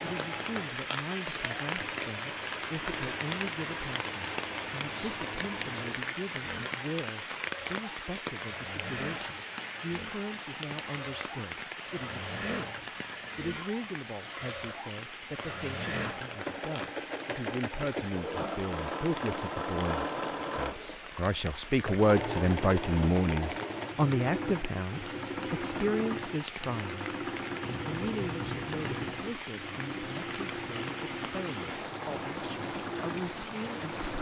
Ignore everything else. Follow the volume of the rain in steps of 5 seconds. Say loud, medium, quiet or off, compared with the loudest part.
loud, loud, medium, medium, medium, medium, loud.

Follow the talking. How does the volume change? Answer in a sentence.
The volume of the talking goes up, then down.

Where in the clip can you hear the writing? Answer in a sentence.
The writing can be heard from 27.6 to 29.2 s.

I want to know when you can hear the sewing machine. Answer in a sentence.
You can hear the sewing machine from 0.0 to 34.1 s.